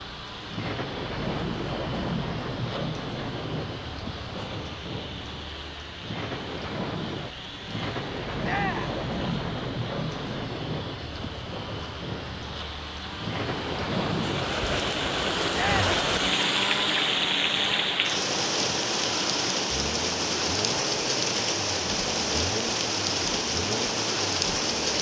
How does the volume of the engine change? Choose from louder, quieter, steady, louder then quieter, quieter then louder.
louder then quieter.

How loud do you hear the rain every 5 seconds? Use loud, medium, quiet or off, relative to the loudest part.
medium, medium, medium, loud, loud.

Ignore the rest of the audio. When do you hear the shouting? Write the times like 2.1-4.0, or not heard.
8.4-8.9, 15.5-15.9.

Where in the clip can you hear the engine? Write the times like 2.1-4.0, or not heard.
0.0-24.9.